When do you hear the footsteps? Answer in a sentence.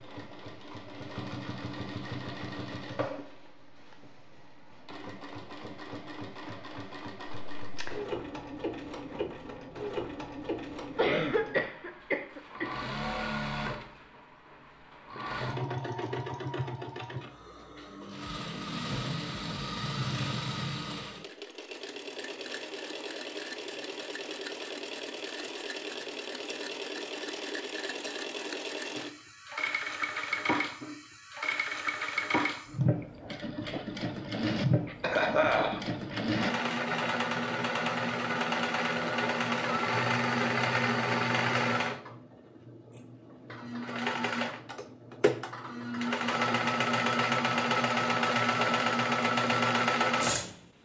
You can't hear the footsteps here.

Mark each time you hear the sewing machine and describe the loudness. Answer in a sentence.
You can hear the sewing machine from 0.0 to 50.5 s, getting louder.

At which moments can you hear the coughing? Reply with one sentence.
The coughing can be heard from 10.9 to 12.9 s and from 34.9 to 36.4 s.